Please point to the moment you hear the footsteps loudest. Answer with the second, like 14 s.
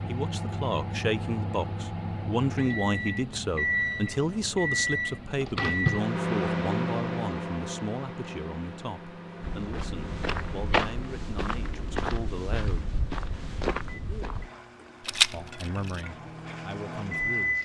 11 s.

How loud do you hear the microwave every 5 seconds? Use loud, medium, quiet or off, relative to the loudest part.
loud, loud, quiet, loud.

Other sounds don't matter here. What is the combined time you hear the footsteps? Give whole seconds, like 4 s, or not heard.
5 s.